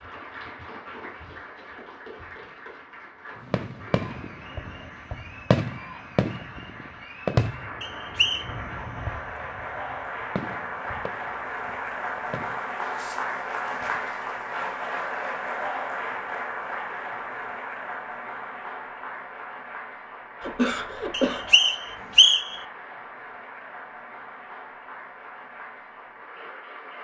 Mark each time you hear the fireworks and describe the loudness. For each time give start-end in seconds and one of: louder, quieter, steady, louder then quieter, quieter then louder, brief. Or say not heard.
3.4-14.1 quieter.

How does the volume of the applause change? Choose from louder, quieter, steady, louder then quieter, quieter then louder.
louder then quieter.